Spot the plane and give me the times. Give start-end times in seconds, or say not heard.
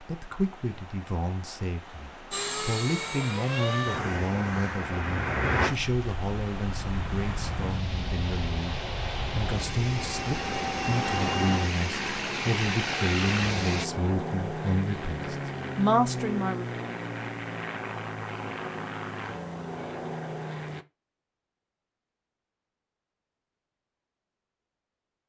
2.3-20.9.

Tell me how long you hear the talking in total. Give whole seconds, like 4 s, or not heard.
17 s.